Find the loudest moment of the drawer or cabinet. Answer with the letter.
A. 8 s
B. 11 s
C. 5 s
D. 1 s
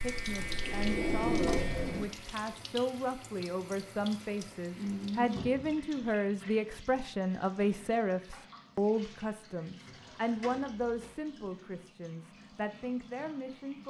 D.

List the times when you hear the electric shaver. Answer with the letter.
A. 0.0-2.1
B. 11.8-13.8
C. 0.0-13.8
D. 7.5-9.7
A.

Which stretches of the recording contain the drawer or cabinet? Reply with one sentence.
The drawer or cabinet can be heard from 0.0 to 2.0 s, from 5.3 to 5.8 s and from 10.4 to 11.1 s.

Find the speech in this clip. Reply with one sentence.
You can hear the speech from 0.0 to 13.8 s.